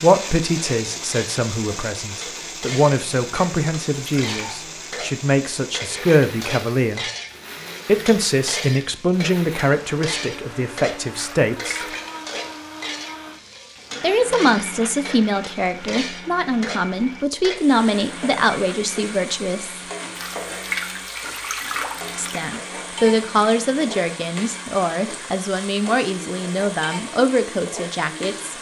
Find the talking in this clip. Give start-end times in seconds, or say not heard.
0.0-7.0, 7.8-11.8, 14.0-19.8, 22.1-28.5.